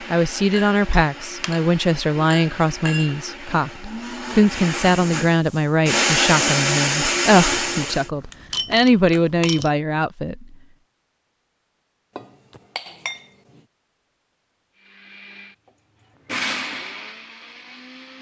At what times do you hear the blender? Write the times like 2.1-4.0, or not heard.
0.0-8.1, 14.8-18.1.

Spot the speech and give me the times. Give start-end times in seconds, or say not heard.
0.1-10.4.